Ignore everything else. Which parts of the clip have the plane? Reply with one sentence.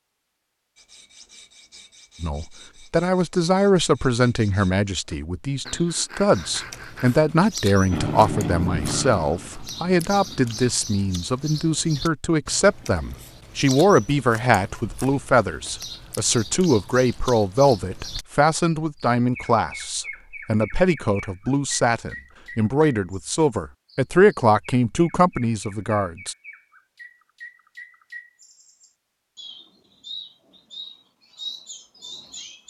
The plane can be heard from 7.9 to 10.8 s.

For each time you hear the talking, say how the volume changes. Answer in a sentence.
The talking can be heard from 2.2 to 26.4 s, at a steady volume.